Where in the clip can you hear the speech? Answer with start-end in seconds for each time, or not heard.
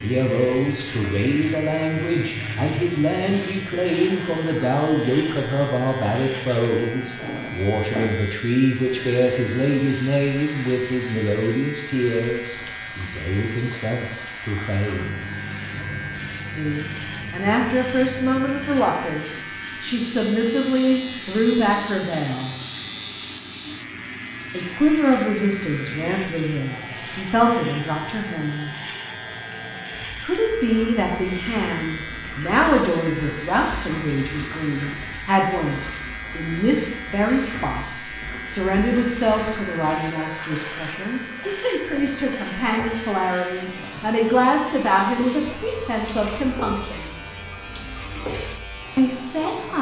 0.0-15.2, 16.6-22.6, 24.5-28.8, 30.2-47.1, 49.0-49.7.